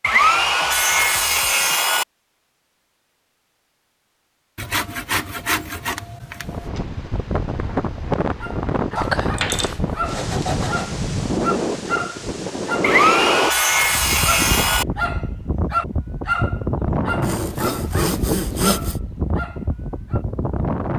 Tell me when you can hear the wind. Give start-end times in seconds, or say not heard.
6.4-20.9.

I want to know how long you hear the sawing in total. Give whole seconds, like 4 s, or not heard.
10 s.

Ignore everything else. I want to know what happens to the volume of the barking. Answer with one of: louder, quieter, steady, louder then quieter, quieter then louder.
louder then quieter.